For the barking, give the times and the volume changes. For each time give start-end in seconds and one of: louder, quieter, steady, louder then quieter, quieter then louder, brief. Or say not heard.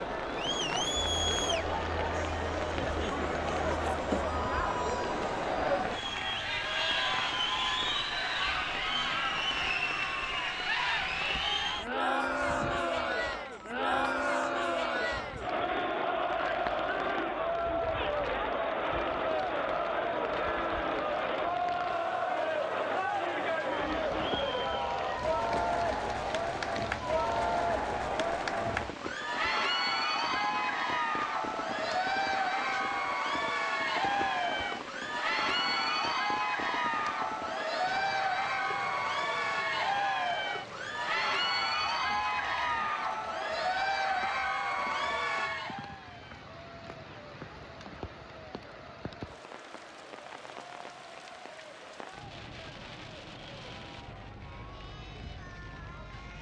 not heard.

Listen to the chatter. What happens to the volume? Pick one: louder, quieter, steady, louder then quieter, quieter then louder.
quieter.